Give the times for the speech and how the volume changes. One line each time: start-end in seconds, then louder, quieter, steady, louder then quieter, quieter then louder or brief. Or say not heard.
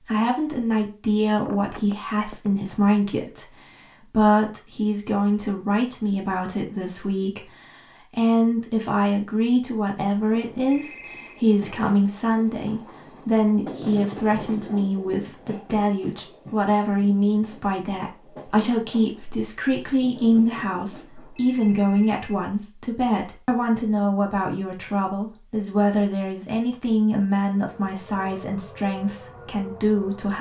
0.0-30.3 steady.